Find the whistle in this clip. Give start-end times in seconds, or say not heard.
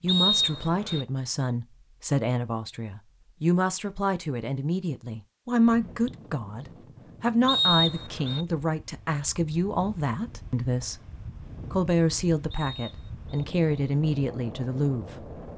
0.1-1.1, 7.5-8.4, 12.5-13.4.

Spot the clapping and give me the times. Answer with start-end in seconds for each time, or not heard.
not heard.